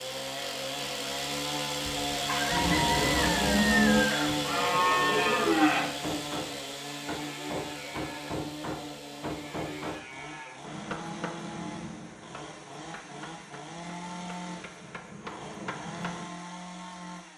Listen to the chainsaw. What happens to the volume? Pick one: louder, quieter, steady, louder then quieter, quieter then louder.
quieter.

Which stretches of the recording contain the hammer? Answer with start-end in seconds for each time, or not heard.
5.8-16.3.